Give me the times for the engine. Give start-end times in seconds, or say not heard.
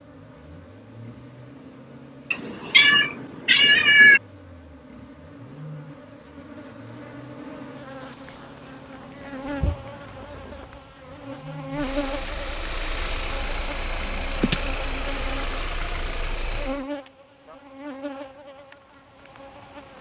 0.0-16.9.